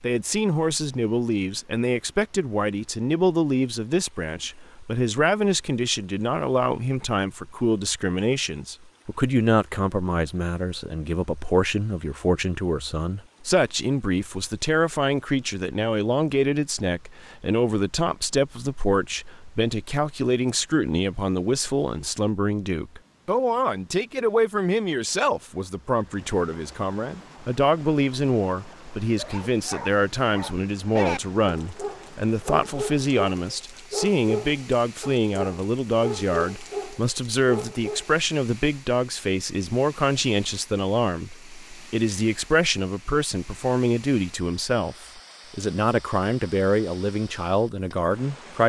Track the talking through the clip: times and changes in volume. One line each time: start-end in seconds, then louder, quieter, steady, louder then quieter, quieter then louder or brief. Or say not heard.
0.0-48.6 steady.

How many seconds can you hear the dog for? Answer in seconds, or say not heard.
9 s.